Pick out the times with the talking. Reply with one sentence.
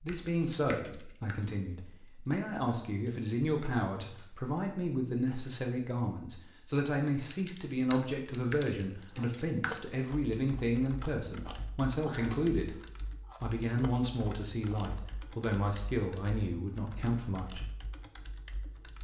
You can hear the talking from 0.0 to 12.8 s and from 13.4 to 17.6 s.